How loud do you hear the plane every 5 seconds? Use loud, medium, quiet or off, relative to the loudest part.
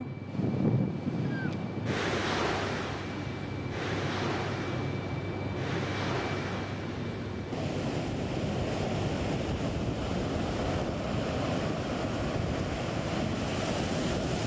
loud, loud, off.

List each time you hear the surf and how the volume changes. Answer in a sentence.
The surf can be heard from 0.0 to 14.4 s, getting quieter then louder.